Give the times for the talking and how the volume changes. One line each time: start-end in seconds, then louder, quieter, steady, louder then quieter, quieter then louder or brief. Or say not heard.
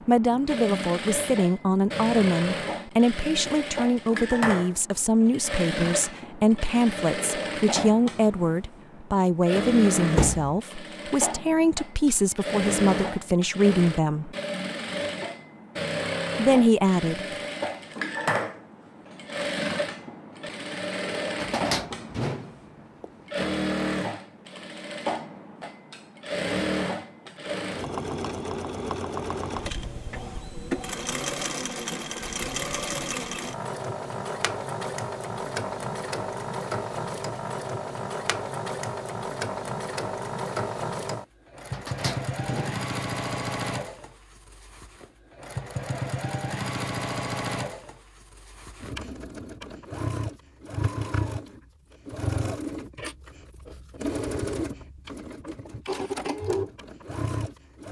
0.1-14.3 steady
16.4-17.2 brief.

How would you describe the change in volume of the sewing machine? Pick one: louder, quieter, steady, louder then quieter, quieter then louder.
steady.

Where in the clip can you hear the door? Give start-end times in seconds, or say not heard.
10.2-10.6, 21.4-23.1, 41.7-43.4.